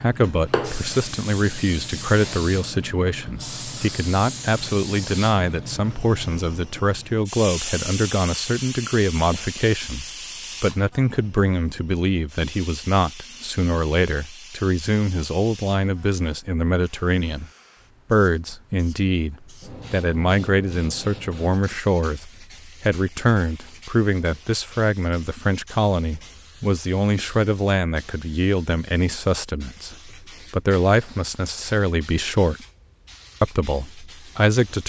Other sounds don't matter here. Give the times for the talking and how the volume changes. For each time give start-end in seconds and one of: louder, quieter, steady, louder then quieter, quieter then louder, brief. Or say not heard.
0.0-17.5 steady
18.1-32.6 steady
33.4-34.8 brief.